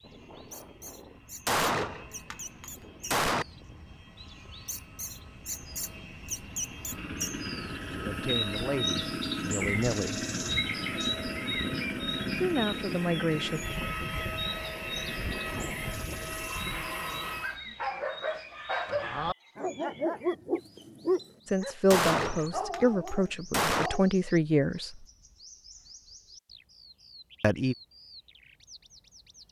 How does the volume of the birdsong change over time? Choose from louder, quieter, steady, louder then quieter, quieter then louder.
louder then quieter.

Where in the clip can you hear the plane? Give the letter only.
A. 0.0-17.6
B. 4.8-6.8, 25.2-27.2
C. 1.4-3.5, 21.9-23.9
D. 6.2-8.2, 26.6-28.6
A.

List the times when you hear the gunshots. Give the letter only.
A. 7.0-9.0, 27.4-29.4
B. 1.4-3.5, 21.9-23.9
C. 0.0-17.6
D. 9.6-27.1
B.